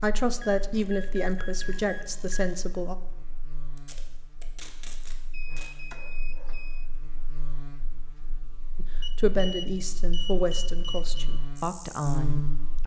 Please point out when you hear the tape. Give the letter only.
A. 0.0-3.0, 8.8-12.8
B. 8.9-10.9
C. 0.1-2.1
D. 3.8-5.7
D.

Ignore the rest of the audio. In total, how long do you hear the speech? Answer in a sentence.
You can hear the speech for 7 seconds altogether.